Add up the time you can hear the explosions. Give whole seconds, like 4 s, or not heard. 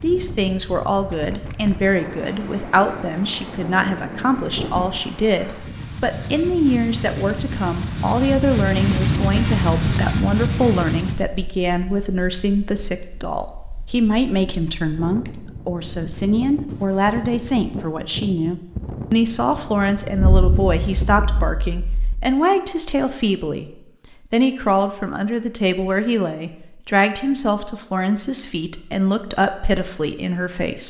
2 s.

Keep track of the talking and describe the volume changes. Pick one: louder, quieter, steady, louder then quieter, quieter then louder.
steady.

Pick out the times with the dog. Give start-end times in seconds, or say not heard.
not heard.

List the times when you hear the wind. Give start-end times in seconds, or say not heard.
0.0-21.6.